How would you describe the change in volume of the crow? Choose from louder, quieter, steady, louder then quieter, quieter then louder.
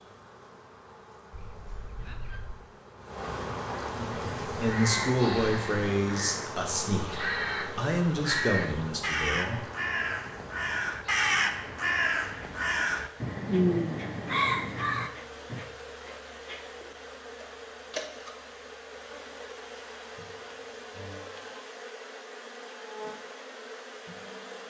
louder.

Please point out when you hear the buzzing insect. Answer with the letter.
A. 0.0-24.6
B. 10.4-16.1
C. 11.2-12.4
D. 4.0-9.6
A.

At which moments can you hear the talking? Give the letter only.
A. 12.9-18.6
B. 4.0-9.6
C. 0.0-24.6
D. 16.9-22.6
B.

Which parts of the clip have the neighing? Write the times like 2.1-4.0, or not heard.
1.3-2.6.